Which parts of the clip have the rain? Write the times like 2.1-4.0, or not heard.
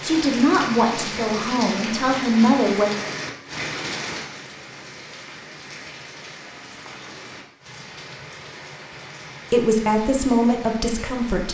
0.0-11.4.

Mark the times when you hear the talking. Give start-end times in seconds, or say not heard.
0.0-2.9, 9.5-11.4.